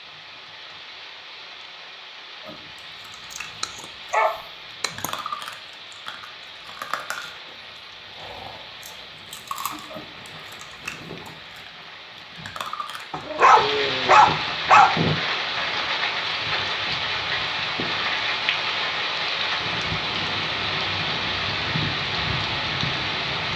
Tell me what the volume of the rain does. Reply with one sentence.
The loudness of the rain goes up.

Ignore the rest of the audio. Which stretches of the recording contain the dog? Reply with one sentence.
You can hear the dog from 3.4 to 5.1 s and from 13.1 to 15.1 s.